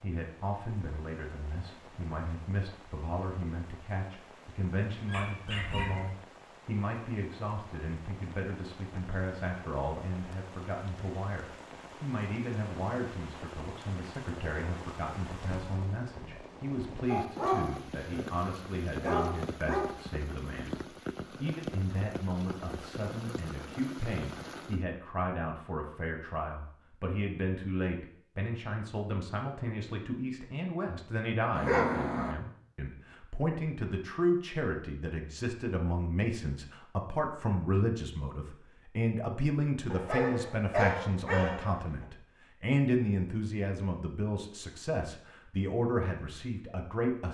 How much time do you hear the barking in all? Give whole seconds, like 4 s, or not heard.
7 s.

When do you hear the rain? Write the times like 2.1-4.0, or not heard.
0.0-24.9.